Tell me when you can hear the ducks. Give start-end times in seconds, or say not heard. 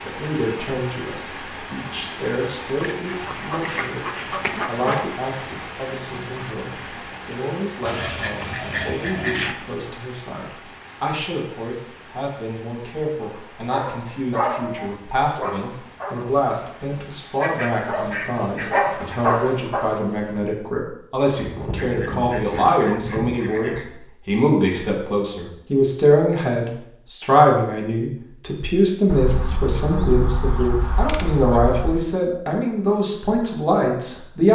2.8-5.0, 7.8-9.6, 17.4-19.2, 21.4-23.9, 29.1-32.0.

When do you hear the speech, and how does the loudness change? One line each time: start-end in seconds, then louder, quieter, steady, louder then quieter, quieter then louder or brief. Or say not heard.
0.0-34.5 louder.